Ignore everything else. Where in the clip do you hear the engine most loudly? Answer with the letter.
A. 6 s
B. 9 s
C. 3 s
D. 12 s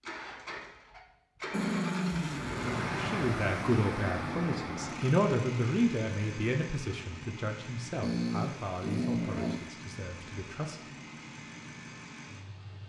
C.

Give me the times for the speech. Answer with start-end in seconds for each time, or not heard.
2.9-10.9.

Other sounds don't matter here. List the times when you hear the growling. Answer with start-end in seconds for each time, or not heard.
1.5-3.0, 8.0-9.7.